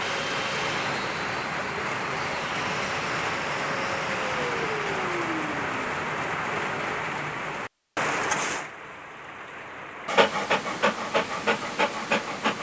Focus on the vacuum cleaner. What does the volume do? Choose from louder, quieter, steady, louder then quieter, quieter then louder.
quieter then louder.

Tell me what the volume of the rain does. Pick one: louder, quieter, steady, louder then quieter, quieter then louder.
quieter.